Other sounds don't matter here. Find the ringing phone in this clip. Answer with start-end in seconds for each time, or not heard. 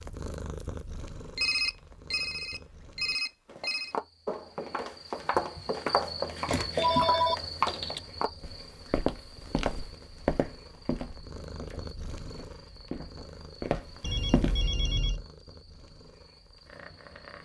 1.4-4.0, 6.3-8.0, 14.0-15.2.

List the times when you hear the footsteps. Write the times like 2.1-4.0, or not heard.
3.5-15.0.